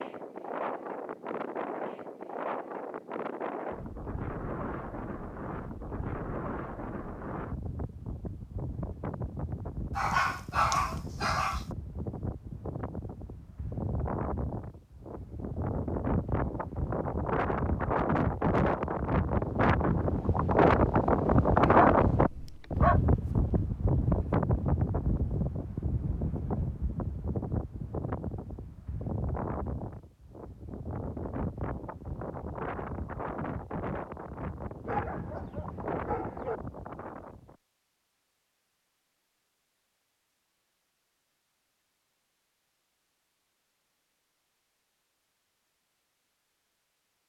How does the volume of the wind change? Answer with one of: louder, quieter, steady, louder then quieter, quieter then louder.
louder then quieter.